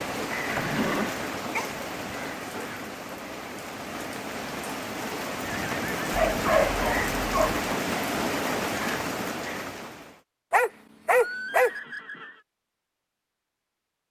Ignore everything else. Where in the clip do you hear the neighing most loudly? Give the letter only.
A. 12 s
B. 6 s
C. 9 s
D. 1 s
D.